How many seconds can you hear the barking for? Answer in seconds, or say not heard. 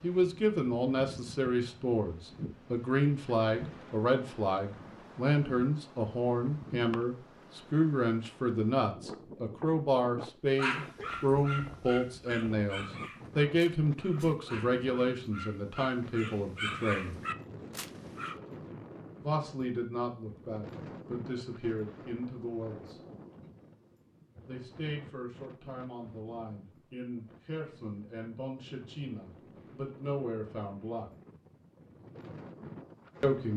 8 s.